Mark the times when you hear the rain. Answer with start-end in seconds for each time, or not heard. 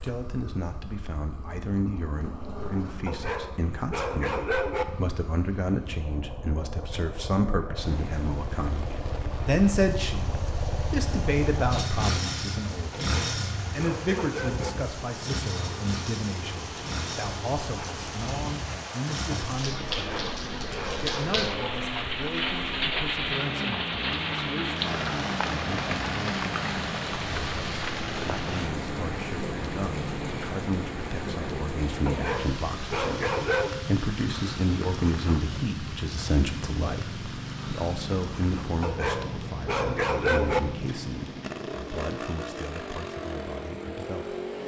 7.8-44.6.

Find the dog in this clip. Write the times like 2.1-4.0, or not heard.
3.0-4.8, 12.9-14.7, 19.9-21.7, 32.0-33.8, 38.8-40.6.